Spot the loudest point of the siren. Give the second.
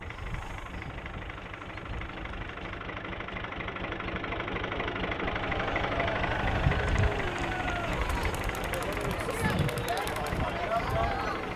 7 s.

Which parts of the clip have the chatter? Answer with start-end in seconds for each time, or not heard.
5.5-11.5.